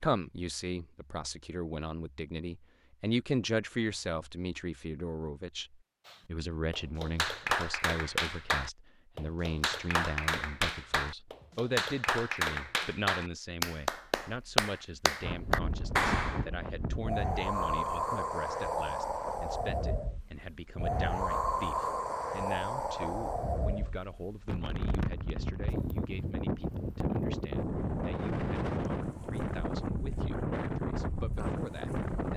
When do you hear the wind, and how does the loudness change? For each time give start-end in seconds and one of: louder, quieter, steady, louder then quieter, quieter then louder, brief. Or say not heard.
15.2-32.3 steady.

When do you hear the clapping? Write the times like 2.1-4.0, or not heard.
6.0-16.4.